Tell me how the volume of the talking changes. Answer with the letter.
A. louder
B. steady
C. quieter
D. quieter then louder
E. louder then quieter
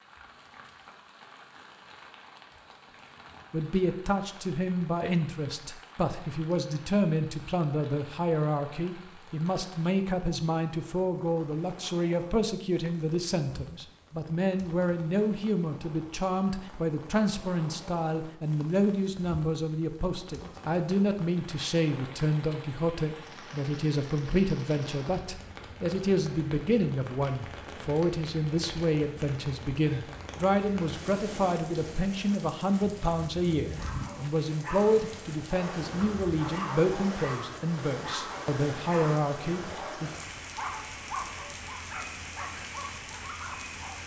B.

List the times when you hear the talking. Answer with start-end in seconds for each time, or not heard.
3.5-40.1.